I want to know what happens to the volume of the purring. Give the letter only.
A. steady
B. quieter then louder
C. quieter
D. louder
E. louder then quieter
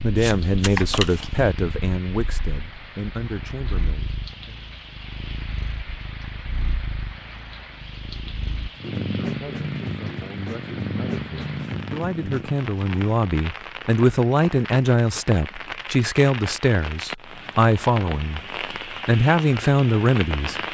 D.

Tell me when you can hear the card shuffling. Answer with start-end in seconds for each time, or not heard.
0.1-1.4.